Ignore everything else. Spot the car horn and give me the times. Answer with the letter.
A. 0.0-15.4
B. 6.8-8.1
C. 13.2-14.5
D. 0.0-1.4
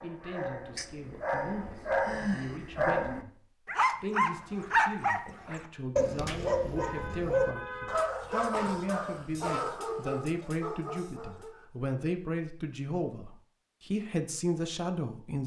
B.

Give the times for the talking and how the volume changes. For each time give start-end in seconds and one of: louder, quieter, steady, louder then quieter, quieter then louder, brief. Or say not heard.
0.0-15.4 louder.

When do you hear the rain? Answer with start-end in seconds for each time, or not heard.
not heard.